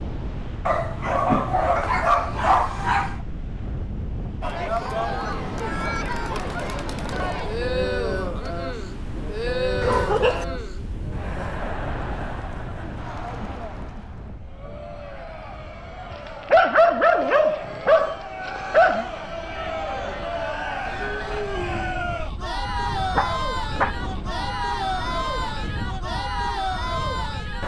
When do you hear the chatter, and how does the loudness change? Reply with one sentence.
The chatter can be heard from 4.4 to 27.6 s, getting quieter then louder.